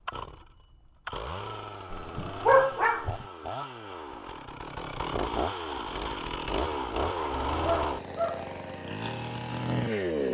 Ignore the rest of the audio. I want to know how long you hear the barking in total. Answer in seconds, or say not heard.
3 s.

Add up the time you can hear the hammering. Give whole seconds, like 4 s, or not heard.
not heard.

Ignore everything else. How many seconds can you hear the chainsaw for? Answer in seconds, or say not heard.
10 s.